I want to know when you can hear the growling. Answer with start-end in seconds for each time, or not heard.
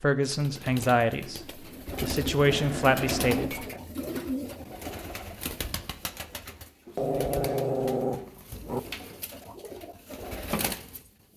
2.5-3.8, 6.8-8.8.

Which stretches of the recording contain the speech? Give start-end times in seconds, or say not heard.
0.0-1.4, 2.0-3.5.